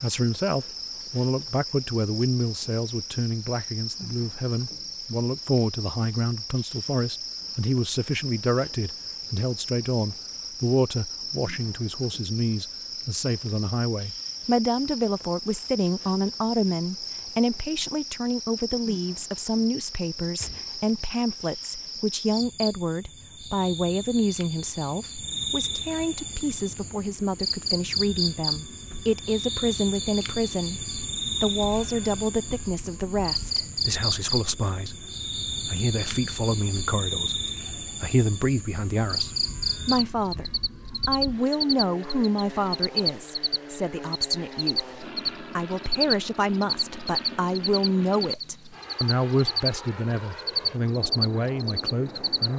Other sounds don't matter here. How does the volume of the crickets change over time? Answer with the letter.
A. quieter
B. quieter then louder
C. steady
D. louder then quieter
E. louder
E.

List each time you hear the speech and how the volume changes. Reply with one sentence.
You can hear the speech from 0.0 to 52.5 s, at a steady volume.